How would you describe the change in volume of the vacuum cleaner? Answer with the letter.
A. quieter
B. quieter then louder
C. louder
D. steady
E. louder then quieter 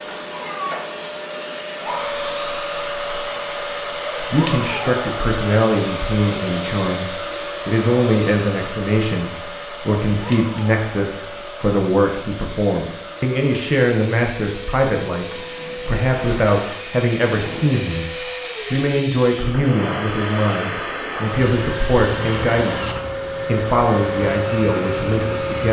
B.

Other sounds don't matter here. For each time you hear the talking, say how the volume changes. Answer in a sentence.
The talking can be heard from 4.2 to 25.6 s, at a steady volume.